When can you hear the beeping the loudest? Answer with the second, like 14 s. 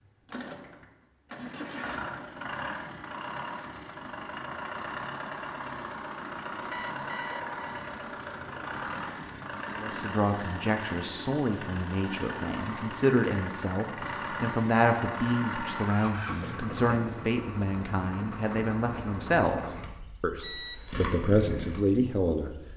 21 s.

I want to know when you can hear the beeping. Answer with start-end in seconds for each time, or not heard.
6.7-7.9, 20.4-21.0.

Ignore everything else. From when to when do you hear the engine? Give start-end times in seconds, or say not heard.
0.0-22.7.